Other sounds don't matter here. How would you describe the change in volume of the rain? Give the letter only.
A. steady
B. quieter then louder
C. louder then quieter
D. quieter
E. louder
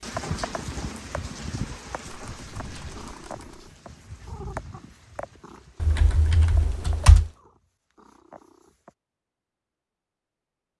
D.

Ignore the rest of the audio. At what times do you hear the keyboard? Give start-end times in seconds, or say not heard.
2.1-3.6, 5.8-7.3.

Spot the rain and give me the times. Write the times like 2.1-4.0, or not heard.
0.0-7.4.